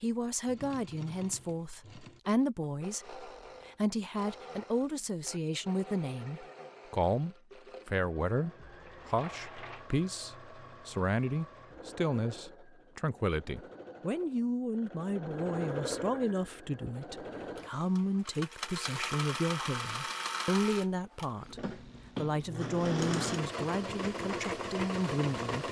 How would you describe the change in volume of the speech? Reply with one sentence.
The volume of the speech stays about the same.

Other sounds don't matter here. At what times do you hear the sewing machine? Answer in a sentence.
The sewing machine can be heard from 0.0 to 25.6 s.